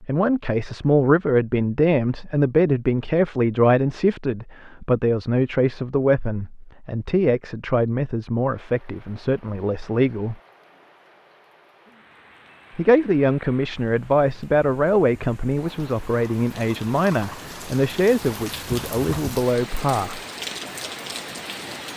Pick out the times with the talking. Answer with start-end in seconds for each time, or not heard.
0.0-10.3, 12.8-20.2.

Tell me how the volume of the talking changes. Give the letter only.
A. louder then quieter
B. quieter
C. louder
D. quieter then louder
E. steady
E.